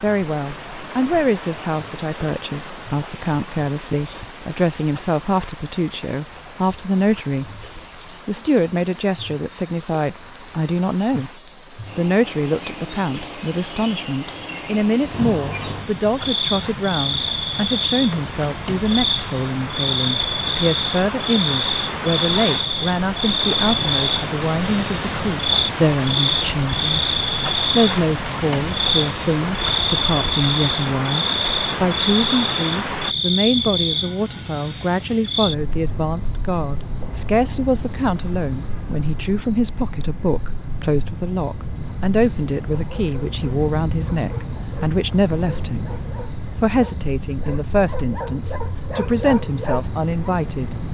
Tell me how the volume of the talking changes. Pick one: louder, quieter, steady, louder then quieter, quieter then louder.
steady.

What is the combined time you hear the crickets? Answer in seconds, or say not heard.
51 s.